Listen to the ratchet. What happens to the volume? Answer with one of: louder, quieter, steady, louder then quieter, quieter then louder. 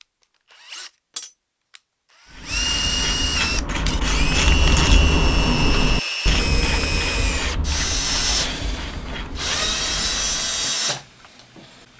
louder then quieter.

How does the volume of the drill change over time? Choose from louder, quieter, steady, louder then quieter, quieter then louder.
louder.